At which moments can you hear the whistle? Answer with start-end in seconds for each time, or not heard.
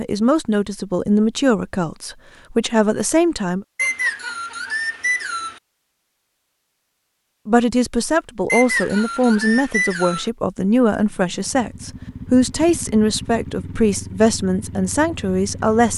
3.8-5.6, 8.4-10.3.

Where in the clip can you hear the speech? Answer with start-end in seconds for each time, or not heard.
0.0-3.6, 7.5-15.9.